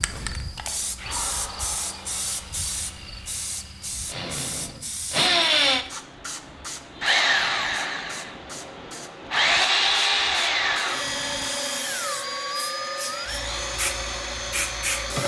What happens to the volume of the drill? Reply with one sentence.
The loudness of the drill goes up, then down.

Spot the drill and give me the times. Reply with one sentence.
You can hear the drill from 0.0 to 15.2 s.